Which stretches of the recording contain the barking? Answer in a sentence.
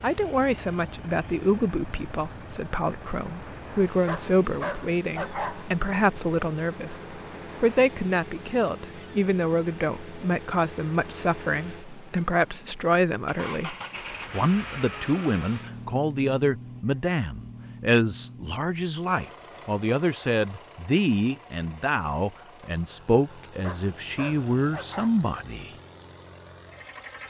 You can hear the barking from 3.9 to 5.7 s and from 23.3 to 25.1 s.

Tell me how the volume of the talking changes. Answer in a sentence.
The loudness of the talking stays about the same.